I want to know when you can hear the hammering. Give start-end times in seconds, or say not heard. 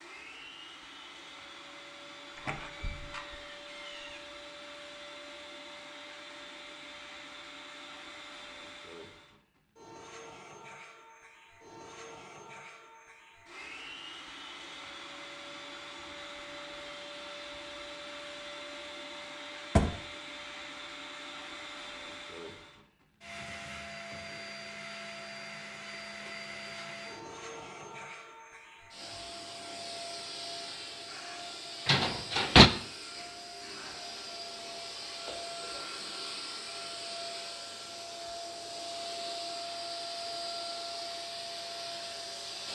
not heard.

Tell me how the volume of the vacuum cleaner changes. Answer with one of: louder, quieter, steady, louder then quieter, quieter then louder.
louder.